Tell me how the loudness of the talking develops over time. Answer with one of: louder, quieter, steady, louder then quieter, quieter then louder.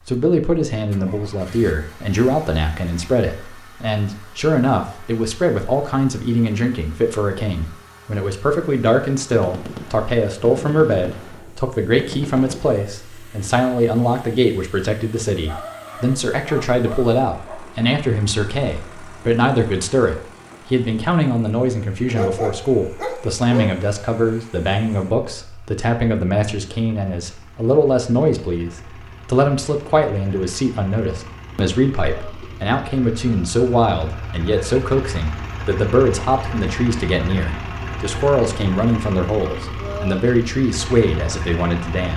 steady.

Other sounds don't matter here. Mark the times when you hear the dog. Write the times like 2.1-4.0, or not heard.
15.4-17.8, 22.1-23.8.